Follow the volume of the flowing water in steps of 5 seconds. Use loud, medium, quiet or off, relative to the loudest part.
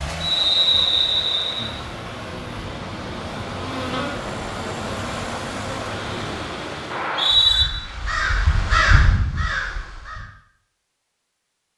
loud, loud, off.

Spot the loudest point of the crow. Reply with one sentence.
The loudest moment of the crow is at 9 seconds.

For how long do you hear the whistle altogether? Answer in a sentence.
The whistle can be heard for 2 seconds in total.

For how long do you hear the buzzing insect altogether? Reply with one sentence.
You can hear the buzzing insect for 5 seconds altogether.